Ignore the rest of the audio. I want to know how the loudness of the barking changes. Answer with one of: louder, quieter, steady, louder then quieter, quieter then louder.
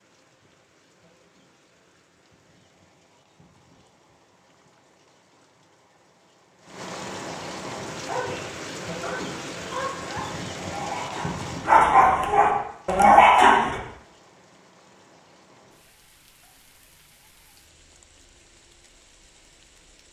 louder.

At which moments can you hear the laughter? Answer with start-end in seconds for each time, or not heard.
not heard.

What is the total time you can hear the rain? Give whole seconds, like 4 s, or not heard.
20 s.